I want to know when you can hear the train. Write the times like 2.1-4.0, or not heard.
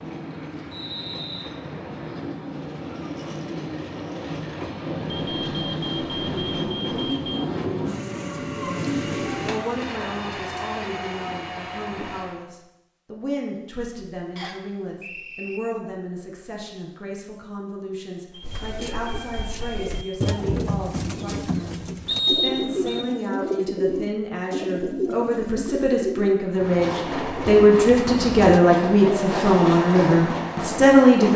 0.0-12.4, 26.5-31.3.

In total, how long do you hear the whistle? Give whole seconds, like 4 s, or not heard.
3 s.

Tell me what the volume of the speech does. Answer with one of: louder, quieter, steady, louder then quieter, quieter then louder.
louder.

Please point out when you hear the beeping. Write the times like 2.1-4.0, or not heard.
5.0-7.5, 18.3-20.4.